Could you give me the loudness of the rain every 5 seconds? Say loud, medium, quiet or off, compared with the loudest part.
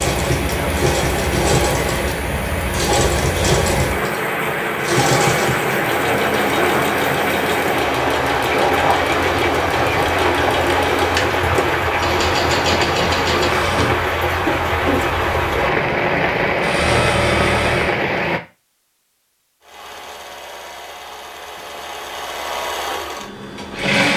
loud, loud, loud, loud, off.